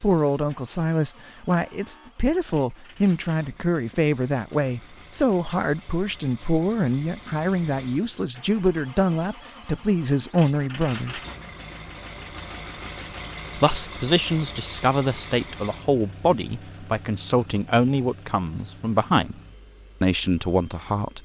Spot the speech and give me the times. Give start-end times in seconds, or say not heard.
0.0-11.2, 13.6-19.4, 20.0-21.1.